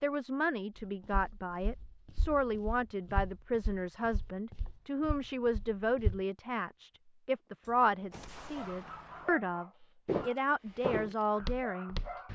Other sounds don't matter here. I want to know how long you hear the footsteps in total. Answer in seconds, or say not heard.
8 s.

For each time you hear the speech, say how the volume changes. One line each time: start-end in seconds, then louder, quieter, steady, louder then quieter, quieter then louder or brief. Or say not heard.
0.0-12.3 steady.